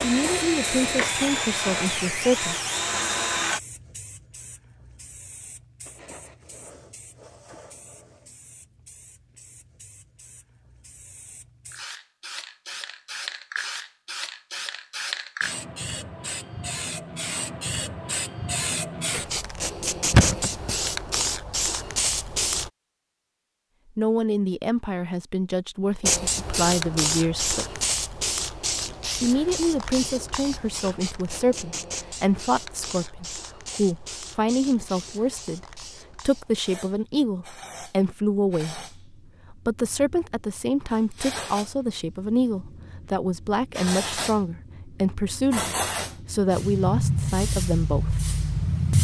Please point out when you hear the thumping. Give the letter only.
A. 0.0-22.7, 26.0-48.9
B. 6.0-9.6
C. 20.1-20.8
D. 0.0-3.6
C.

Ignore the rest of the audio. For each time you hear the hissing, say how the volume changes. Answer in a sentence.
The hissing can be heard from 0.0 to 22.7 s, getting quieter then louder; and from 26.0 to 48.9 s, getting quieter then louder.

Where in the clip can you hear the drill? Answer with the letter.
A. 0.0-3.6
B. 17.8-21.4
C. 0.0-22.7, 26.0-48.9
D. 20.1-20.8
A.